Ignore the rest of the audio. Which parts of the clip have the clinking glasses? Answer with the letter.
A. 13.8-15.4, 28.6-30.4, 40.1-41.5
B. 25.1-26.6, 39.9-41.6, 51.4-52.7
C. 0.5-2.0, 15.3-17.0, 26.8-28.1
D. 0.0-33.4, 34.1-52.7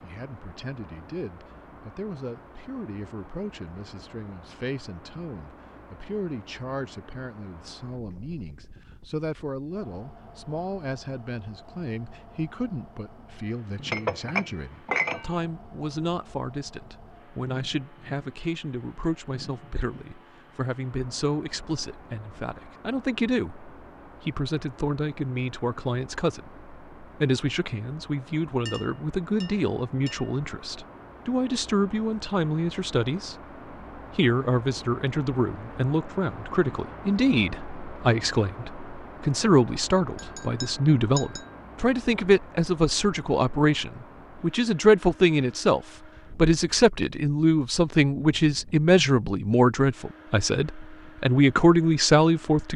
A.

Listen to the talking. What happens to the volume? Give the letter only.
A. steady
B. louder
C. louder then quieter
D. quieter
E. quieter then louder
B.